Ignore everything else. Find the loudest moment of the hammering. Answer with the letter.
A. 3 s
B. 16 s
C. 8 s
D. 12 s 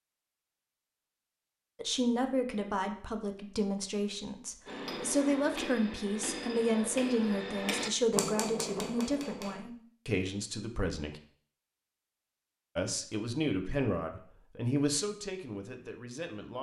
C.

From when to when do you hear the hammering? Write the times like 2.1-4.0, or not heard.
4.7-9.6.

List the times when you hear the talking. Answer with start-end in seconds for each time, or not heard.
1.8-11.2, 12.8-16.5.